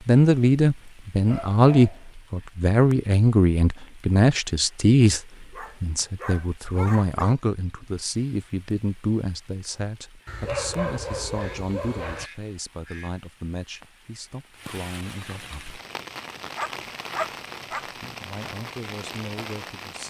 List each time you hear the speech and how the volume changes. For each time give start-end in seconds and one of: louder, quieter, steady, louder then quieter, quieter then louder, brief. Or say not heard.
0.1-15.8 quieter
17.9-20.0 brief.